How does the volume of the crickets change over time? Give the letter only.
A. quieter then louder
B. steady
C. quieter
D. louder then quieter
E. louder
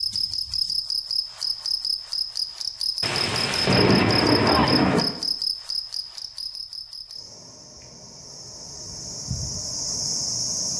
A.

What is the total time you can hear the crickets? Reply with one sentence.
The crickets can be heard for 11 seconds in total.